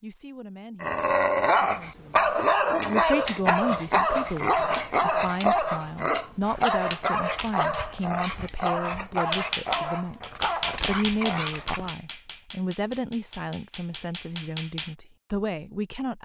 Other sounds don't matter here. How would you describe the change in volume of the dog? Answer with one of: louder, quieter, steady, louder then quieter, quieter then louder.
quieter.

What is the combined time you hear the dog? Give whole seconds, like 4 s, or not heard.
11 s.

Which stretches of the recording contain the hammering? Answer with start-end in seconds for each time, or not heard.
9.2-14.9.